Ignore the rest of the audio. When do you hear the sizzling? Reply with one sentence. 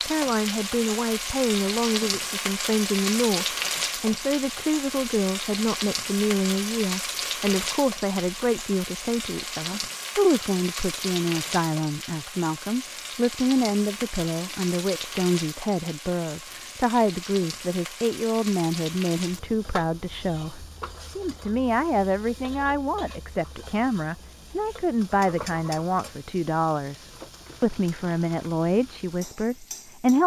You can hear the sizzling from 0.0 to 30.2 s.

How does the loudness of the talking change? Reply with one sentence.
The volume of the talking stays about the same.